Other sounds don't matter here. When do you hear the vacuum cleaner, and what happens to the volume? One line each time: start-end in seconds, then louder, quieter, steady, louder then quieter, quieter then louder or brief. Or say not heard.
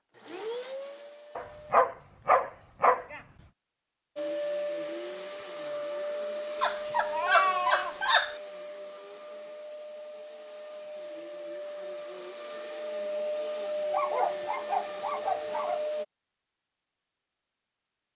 0.1-1.8 brief
4.2-16.1 quieter then louder.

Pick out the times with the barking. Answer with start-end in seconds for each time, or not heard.
1.4-3.2, 6.6-8.3, 13.9-15.9.